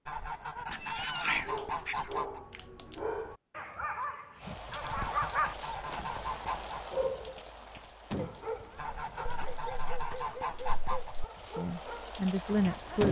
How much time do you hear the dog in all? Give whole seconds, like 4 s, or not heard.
12 s.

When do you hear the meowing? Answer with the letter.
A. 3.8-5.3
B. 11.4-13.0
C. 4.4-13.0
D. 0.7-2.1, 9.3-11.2
D.